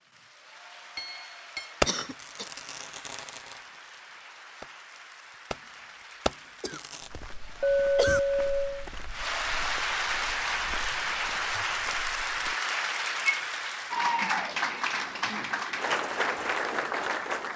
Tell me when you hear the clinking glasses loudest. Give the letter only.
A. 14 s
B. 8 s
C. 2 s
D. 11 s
B.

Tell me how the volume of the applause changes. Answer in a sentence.
The volume of the applause goes up.